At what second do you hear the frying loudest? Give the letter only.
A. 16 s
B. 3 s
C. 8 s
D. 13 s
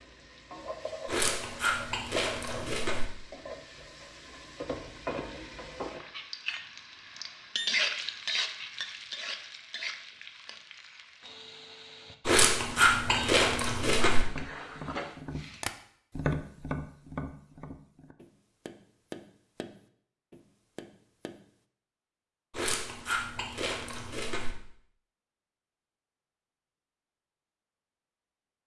C.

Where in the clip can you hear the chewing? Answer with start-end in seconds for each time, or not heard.
1.1-3.0, 12.2-14.2, 22.5-24.6.